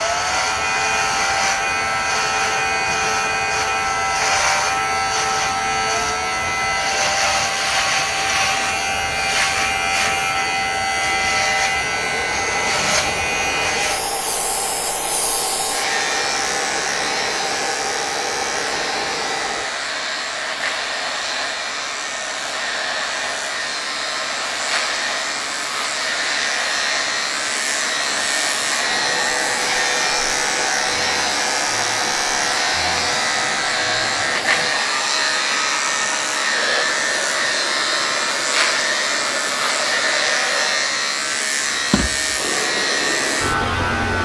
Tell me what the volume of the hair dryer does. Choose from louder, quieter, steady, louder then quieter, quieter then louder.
steady.